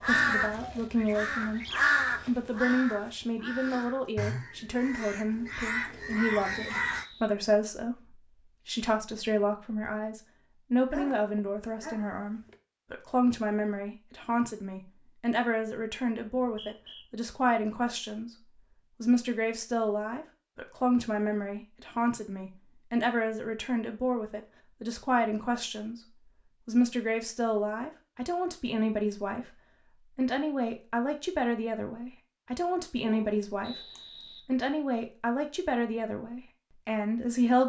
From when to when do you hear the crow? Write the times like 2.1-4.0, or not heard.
0.0-7.0.